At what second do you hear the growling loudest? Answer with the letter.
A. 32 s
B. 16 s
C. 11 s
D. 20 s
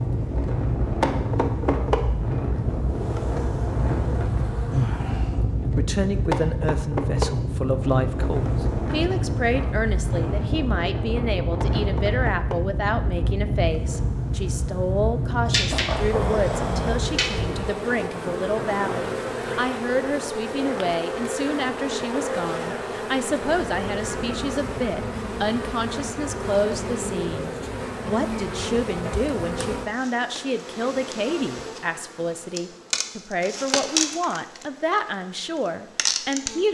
B.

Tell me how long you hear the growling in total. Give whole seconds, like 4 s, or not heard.
2 s.